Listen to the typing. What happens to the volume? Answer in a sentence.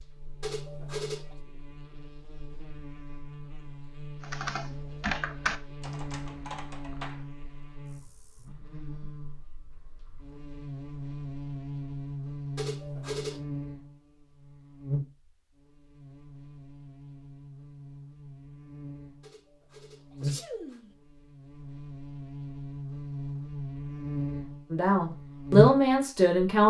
The loudness of the typing goes down.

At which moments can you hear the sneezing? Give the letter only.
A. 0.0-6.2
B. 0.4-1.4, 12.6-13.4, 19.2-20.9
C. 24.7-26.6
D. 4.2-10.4
B.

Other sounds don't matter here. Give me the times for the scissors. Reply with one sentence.
The scissors can't be heard in this clip.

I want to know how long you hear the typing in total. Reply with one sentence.
You can hear the typing for 6 seconds altogether.